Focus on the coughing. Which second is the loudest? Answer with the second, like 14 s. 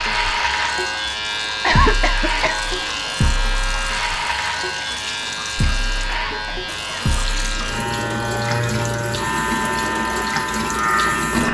2 s.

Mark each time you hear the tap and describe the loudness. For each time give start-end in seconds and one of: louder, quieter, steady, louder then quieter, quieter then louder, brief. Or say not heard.
0.0-11.4 louder.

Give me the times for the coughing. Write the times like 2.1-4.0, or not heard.
1.6-2.5, 6.0-7.1.